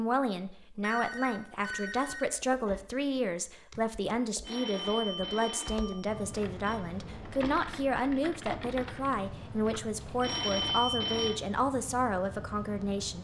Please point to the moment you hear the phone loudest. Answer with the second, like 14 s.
11 s.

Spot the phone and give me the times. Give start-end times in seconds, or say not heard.
0.8-2.8, 4.4-6.8, 10.2-11.4.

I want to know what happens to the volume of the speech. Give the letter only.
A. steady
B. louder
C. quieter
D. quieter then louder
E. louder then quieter
A.